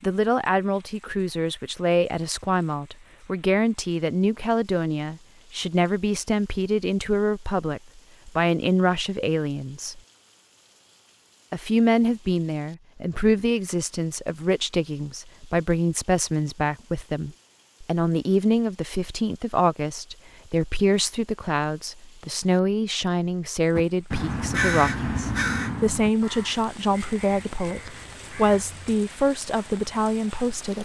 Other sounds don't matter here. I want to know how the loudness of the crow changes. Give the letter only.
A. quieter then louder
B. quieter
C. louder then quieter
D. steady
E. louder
B.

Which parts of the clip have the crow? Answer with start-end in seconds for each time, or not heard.
23.8-29.0.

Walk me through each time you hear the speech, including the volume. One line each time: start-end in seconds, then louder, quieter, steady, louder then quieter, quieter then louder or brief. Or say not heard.
0.0-10.0 steady
11.5-30.8 steady.